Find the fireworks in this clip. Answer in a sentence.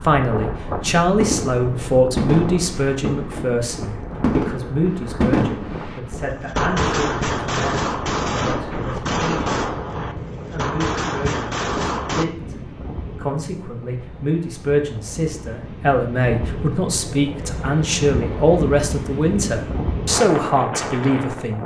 You can hear the fireworks from 1.2 to 12.2 s.